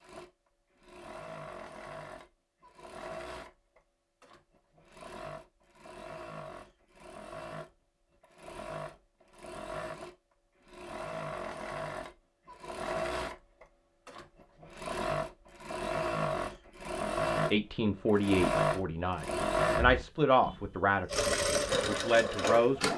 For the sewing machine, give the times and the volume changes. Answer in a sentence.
The sewing machine can be heard from 0.0 to 22.9 s, getting louder.